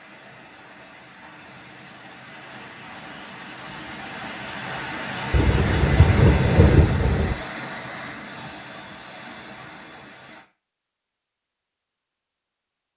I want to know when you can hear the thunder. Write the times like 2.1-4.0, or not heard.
5.3-7.3.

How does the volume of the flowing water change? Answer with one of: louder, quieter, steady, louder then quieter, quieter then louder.
louder then quieter.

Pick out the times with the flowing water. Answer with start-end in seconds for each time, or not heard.
0.0-10.4.